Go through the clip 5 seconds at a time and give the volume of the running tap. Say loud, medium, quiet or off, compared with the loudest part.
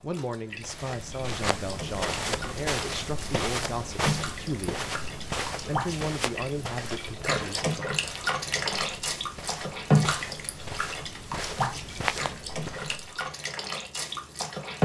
medium, loud, loud.